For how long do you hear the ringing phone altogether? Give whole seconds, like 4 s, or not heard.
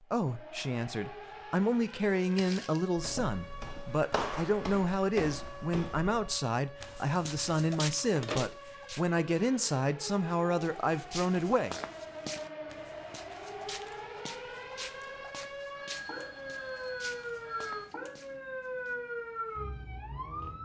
4 s.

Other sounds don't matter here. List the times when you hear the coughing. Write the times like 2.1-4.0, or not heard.
not heard.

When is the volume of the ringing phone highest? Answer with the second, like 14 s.
8 s.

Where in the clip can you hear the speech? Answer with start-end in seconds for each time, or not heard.
0.1-11.8.